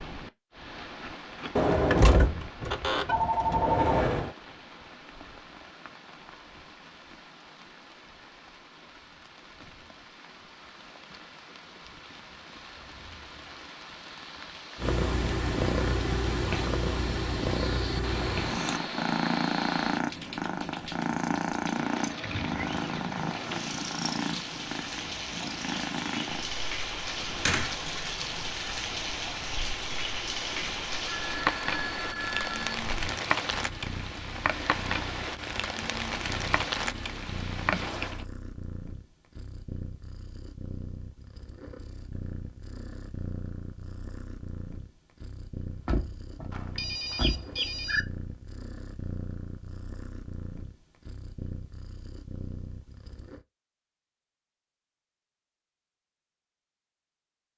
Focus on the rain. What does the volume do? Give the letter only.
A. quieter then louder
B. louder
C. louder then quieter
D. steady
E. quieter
B.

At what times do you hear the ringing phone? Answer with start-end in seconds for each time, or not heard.
3.0-3.9, 31.1-32.8, 46.5-48.0.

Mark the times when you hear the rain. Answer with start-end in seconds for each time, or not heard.
0.0-38.2.